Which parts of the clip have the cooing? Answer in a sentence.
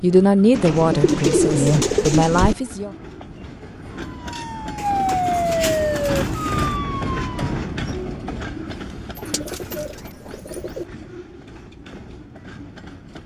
You can hear the cooing from 0.5 to 2.5 s, from 4.8 to 6.8 s and from 9.2 to 10.8 s.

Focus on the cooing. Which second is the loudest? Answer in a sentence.
The loudest moment of the cooing is at 2 seconds.